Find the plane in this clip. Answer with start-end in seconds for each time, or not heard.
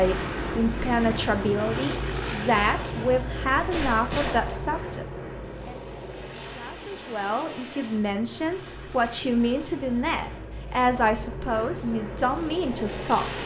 0.0-13.4.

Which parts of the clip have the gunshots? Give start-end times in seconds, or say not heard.
3.5-5.0.